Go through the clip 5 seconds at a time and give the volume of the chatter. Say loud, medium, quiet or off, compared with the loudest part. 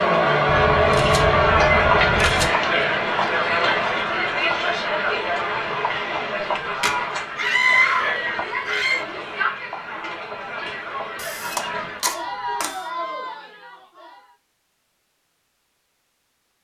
loud, medium, quiet, off.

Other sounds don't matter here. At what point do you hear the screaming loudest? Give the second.
8 s.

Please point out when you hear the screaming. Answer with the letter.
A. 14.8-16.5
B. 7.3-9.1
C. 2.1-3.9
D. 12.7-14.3
B.